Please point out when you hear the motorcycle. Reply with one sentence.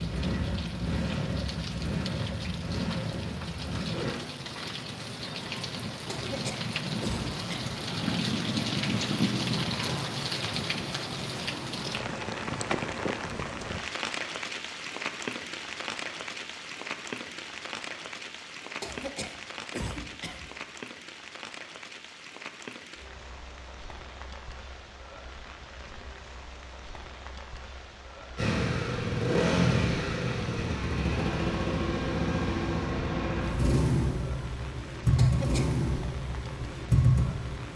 You can hear the motorcycle from 0.0 to 4.2 s and from 28.4 to 37.7 s.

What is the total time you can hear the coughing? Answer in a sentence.
You can hear the coughing for 4 seconds altogether.